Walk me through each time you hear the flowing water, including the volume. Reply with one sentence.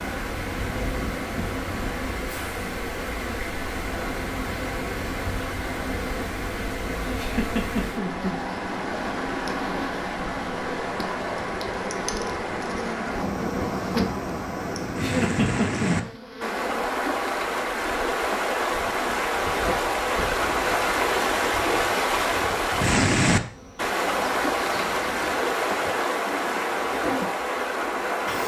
The flowing water can be heard from 0.0 to 28.4 s, getting louder.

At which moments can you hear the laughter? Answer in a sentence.
You can hear the laughter from 7.2 to 8.4 s and from 15.0 to 15.9 s.